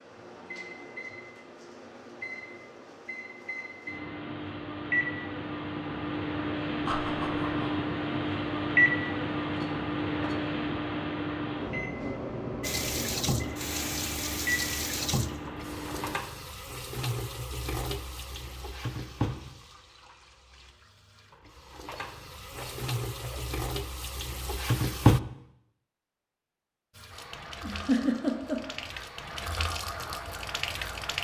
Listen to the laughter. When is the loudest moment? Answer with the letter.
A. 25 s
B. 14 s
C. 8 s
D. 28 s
D.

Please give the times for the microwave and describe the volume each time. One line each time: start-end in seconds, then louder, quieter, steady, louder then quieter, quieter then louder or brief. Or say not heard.
0.0-16.1 louder then quieter.